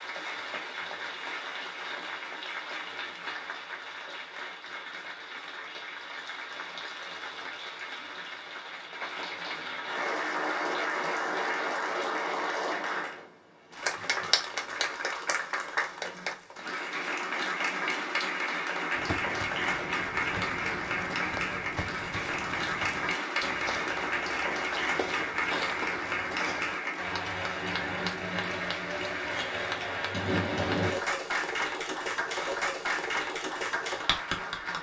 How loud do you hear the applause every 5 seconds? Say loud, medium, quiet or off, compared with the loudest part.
medium, medium, loud, loud, loud, loud, loud.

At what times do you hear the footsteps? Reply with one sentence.
You can hear the footsteps from 18.9 to 26.8 s.